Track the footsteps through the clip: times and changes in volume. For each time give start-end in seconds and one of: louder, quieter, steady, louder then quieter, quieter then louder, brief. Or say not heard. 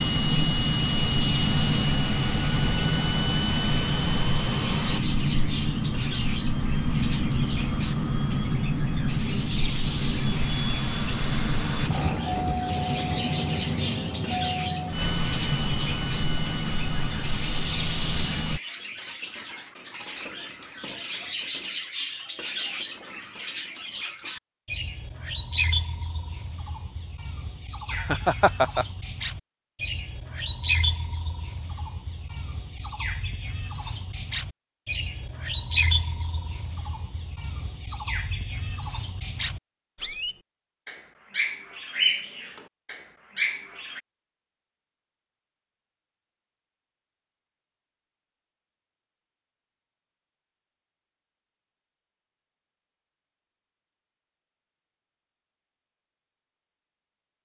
not heard.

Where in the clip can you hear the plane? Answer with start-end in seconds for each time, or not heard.
0.0-18.6.